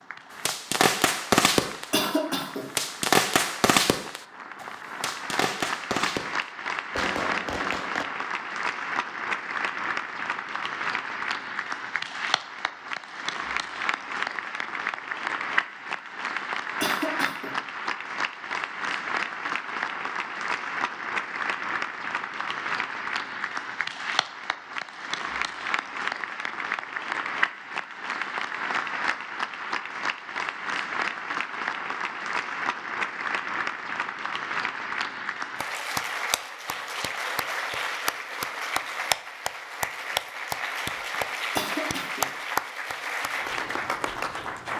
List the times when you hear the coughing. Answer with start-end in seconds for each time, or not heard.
1.9-2.6, 16.8-17.6, 41.5-42.3.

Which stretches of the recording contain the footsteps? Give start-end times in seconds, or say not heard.
not heard.